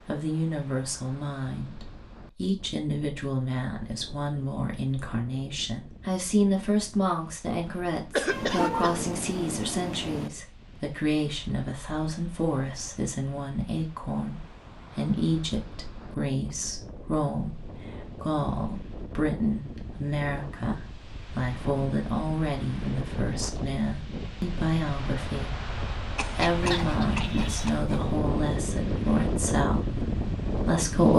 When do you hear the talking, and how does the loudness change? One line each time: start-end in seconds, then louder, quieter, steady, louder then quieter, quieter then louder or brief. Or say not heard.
0.1-31.1 steady.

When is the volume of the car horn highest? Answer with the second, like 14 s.
9 s.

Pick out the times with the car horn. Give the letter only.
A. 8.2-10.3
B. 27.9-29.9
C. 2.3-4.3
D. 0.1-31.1
A.